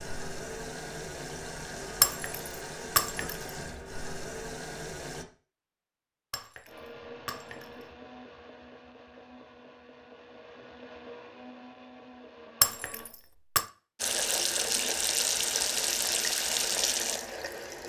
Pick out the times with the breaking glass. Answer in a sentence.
The breaking glass can be heard from 2.0 to 3.4 s, from 6.3 to 7.7 s and from 12.6 to 13.7 s.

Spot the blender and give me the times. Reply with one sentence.
The blender can be heard from 6.7 to 13.2 s.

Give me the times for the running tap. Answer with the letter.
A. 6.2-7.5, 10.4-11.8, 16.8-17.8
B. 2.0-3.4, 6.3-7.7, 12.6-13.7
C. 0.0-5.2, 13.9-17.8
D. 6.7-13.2
C.